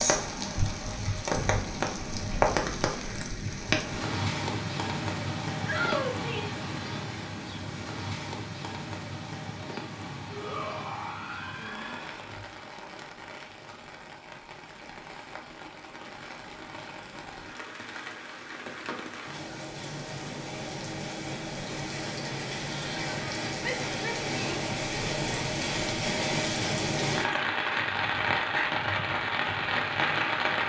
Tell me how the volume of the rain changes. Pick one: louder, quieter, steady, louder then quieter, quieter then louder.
quieter then louder.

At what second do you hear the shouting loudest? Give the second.
6 s.